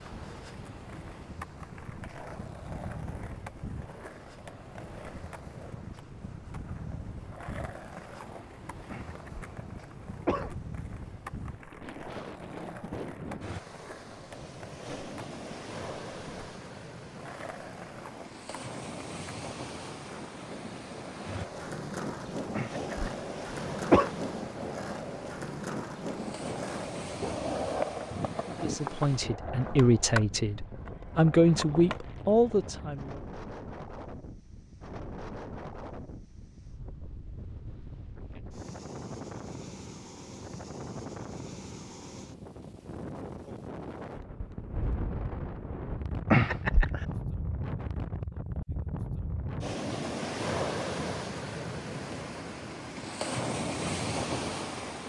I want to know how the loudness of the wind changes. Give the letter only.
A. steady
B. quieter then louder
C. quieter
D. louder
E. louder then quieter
D.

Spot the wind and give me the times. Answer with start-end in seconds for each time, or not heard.
0.0-55.0.